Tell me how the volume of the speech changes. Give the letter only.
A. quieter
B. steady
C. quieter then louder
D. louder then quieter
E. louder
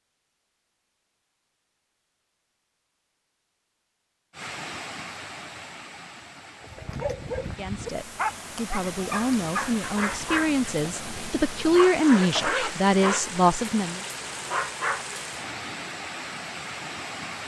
E.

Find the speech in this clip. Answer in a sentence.
You can hear the speech from 7.5 to 14.0 s.